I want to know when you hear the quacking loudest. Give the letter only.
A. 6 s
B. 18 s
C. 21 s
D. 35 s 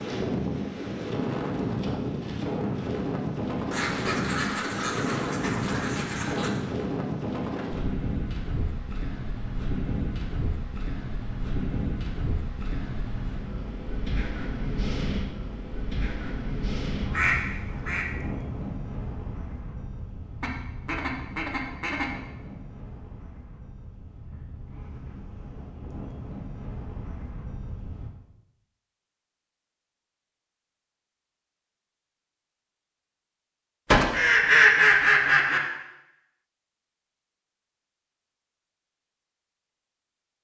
D.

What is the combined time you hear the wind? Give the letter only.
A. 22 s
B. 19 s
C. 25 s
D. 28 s
D.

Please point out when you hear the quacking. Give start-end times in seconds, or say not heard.
3.7-6.6, 17.1-18.1, 20.4-22.1, 33.9-35.6.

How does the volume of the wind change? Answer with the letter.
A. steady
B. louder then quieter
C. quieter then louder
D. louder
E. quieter
E.